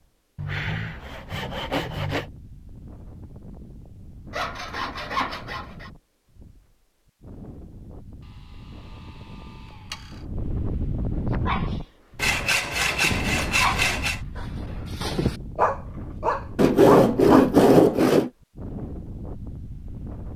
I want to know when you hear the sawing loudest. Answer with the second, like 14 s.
18 s.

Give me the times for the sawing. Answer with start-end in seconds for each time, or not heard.
0.3-2.3, 4.3-5.9, 8.9-10.2, 12.2-14.2, 16.6-18.3.